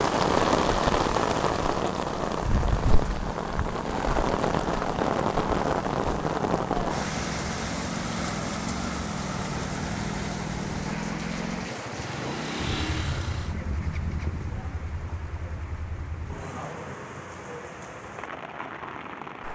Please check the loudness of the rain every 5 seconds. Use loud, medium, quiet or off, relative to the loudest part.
loud, loud, medium, quiet.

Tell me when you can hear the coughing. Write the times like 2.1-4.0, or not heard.
not heard.